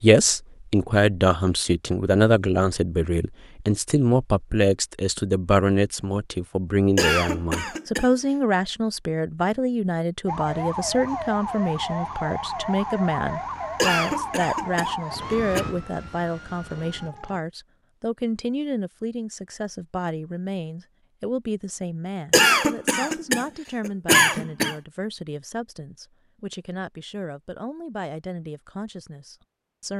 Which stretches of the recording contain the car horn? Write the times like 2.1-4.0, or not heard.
not heard.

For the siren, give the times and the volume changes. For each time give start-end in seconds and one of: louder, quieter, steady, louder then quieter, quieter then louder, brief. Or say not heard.
10.2-17.4 quieter.